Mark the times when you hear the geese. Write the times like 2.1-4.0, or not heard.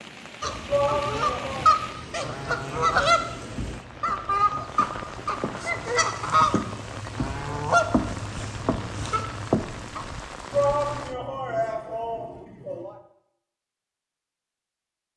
0.4-10.1.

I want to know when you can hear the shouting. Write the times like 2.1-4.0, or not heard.
0.7-1.8, 10.5-13.0.